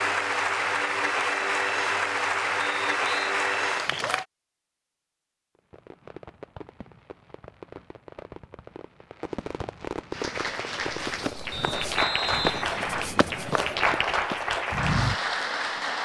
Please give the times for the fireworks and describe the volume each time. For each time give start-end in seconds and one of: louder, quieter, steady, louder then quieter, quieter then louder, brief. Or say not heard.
5.5-11.6 louder.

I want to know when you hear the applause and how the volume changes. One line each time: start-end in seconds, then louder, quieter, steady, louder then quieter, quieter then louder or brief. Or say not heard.
0.0-4.2 steady
10.1-15.9 louder.